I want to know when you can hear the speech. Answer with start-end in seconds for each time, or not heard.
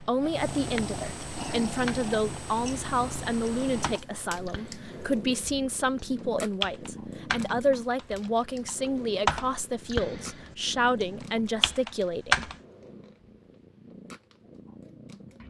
0.0-12.5.